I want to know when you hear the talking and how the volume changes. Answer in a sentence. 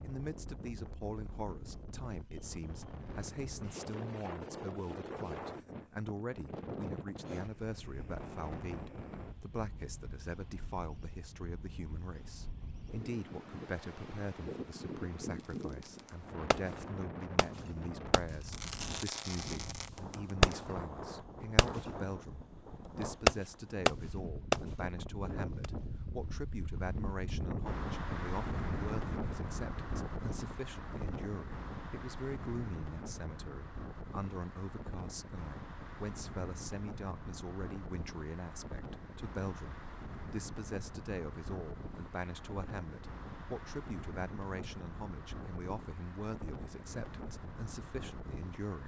The talking can be heard from 0.0 to 48.8 s, at a steady volume.